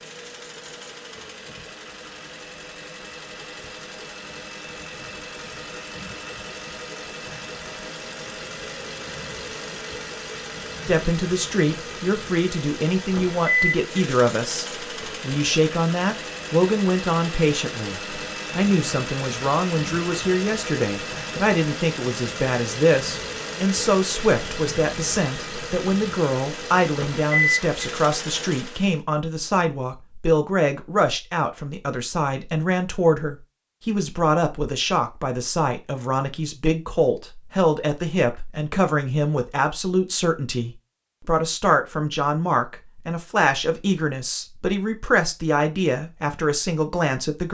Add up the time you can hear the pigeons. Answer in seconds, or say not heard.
not heard.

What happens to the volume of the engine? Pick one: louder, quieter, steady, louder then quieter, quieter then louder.
louder.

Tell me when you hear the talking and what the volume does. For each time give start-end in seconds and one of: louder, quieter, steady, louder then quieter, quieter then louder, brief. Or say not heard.
10.8-47.4 steady.